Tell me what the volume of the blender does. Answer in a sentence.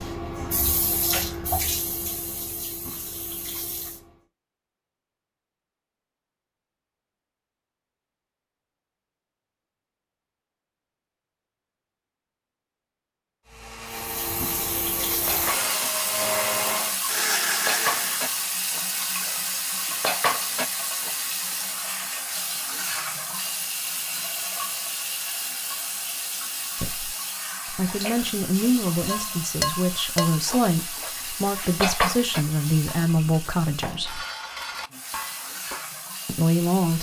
The volume of the blender goes up.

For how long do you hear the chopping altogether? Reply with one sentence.
The chopping can't be heard in this clip.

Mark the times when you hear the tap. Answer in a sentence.
You can hear the tap from 0.0 to 4.2 s and from 13.8 to 36.9 s.